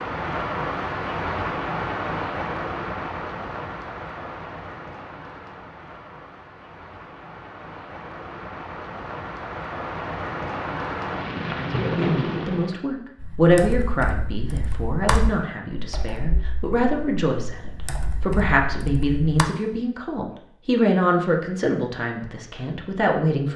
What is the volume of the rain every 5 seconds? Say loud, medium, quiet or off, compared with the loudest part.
loud, medium, loud, off, off.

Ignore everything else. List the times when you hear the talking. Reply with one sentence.
You can hear the talking from 11.5 to 23.5 s.